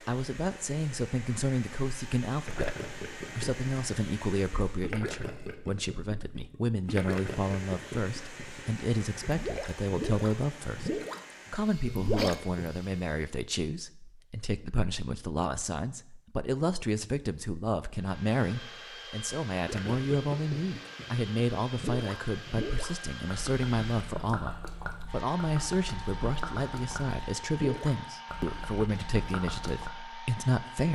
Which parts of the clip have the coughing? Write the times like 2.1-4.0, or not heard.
11.9-12.4.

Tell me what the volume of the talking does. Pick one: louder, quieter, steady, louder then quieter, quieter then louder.
steady.